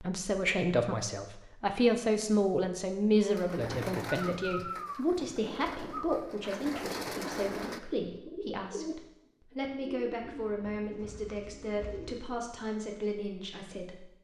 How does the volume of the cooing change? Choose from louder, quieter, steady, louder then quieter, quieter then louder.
quieter.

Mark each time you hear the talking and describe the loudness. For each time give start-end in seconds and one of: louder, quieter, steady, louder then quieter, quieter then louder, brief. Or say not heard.
0.0-14.1 quieter.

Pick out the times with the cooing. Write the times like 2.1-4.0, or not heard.
3.2-12.5.